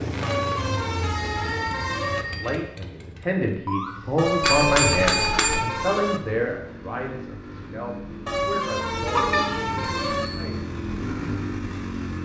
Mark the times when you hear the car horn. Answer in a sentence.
You can hear the car horn from 0.2 to 2.2 s, from 4.2 to 6.2 s and from 8.2 to 10.3 s.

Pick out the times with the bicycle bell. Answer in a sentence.
The bicycle bell can be heard from 1.1 to 2.5 s, from 4.4 to 5.7 s and from 9.1 to 10.5 s.